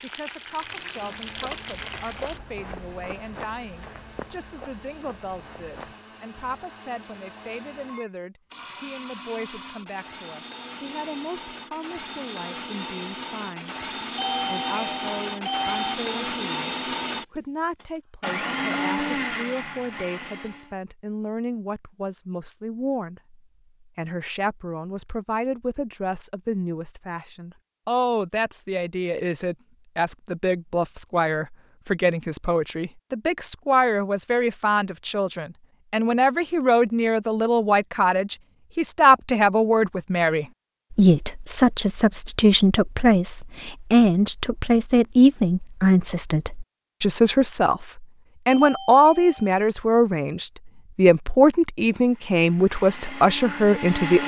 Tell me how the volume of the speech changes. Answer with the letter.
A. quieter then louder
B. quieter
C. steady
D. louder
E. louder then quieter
D.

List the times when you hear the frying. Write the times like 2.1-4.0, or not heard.
0.0-2.4.